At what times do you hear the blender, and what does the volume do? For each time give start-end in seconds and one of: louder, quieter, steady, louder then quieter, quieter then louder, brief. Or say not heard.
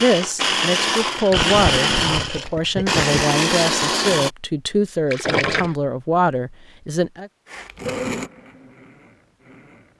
0.0-4.3 steady
7.5-9.9 brief.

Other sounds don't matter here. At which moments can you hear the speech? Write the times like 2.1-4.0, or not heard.
0.0-7.3.